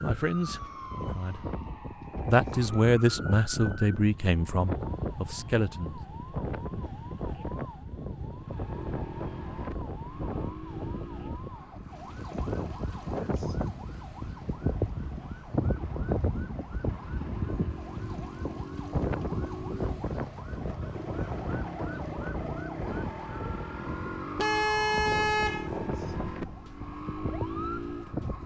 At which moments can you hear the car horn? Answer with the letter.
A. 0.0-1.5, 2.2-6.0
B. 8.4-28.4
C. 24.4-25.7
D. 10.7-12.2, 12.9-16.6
C.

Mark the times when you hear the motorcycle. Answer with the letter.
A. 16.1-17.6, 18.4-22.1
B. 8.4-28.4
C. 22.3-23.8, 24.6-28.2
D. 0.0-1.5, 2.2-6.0
B.